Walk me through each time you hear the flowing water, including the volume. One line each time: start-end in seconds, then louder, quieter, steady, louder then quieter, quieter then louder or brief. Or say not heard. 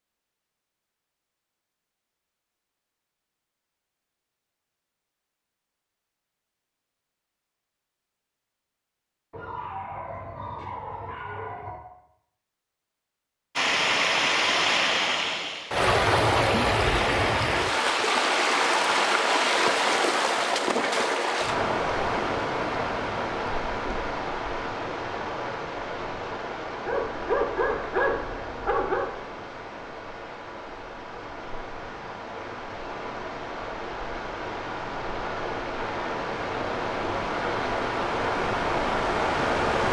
13.6-39.8 quieter then louder.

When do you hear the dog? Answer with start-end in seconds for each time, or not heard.
9.3-11.8, 26.9-29.1.